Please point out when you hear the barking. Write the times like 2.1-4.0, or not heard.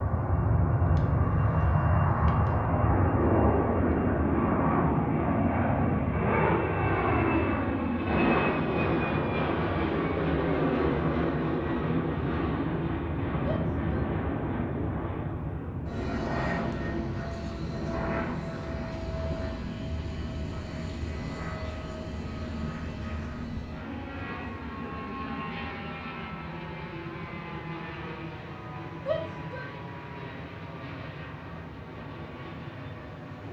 not heard.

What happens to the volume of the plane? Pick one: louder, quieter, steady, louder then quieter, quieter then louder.
quieter.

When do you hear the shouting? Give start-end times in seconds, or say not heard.
13.4-14.1, 29.1-29.6.